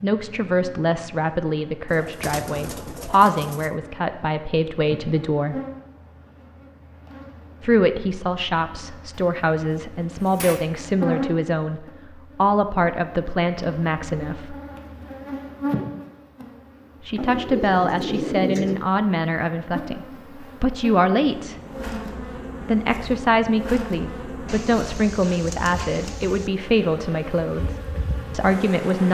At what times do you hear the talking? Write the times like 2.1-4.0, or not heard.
0.0-5.6, 7.6-14.6, 17.1-21.6, 22.6-29.0.